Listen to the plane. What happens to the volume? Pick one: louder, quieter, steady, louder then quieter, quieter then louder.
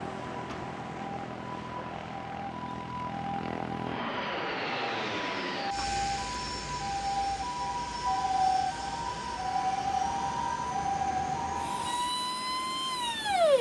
louder then quieter.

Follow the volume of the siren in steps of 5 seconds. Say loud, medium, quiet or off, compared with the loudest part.
medium, loud, loud.